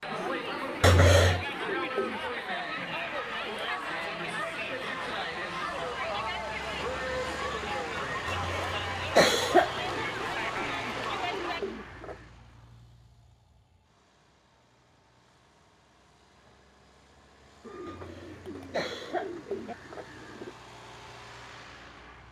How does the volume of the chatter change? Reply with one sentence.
The loudness of the chatter stays about the same.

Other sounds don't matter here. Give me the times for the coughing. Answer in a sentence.
You can hear the coughing from 0.8 to 1.4 s, from 8.2 to 9.7 s and from 17.9 to 19.8 s.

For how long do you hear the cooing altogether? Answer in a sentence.
You can hear the cooing for 8 seconds altogether.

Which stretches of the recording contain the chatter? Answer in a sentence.
You can hear the chatter from 0.0 to 11.6 s.